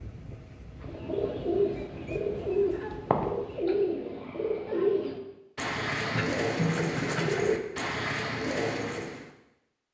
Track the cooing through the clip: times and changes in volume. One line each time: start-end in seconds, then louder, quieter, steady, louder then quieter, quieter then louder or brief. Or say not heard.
0.8-9.2 steady.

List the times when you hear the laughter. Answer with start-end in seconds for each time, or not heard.
6.1-7.5.